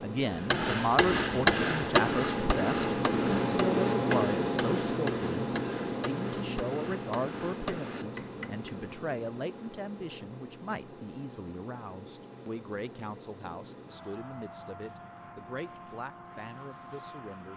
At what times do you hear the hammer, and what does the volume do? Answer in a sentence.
You can hear the hammer from 0.5 to 8.8 s, getting quieter.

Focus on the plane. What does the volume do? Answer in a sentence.
The volume of the plane goes down.